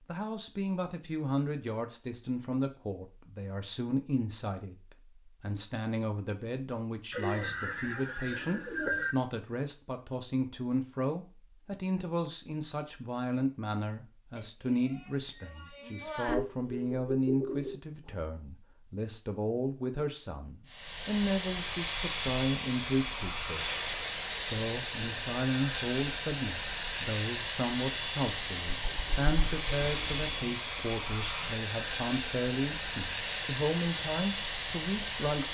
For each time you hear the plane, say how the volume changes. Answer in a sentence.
You can hear the plane from 20.6 to 35.4 s, at a steady volume.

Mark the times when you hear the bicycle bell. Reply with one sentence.
You can hear the bicycle bell from 14.3 to 16.4 s.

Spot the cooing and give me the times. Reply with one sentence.
The cooing can be heard from 7.1 to 9.2 s, from 16.2 to 18.1 s and from 28.6 to 30.6 s.